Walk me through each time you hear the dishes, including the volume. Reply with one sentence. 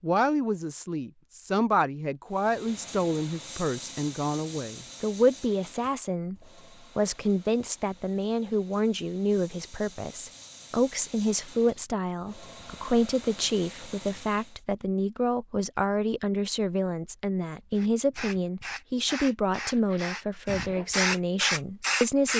You can't hear the dishes here.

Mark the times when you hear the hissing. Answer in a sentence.
The hissing can be heard from 2.4 to 14.6 s and from 17.8 to 22.3 s.